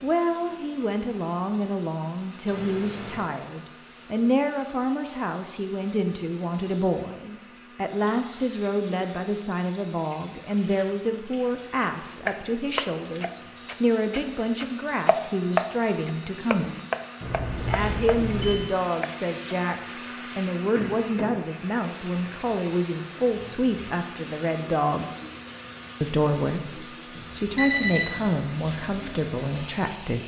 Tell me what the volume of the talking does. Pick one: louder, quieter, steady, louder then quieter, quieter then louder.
steady.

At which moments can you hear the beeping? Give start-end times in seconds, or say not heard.
2.5-3.2, 17.2-18.7, 27.1-28.2.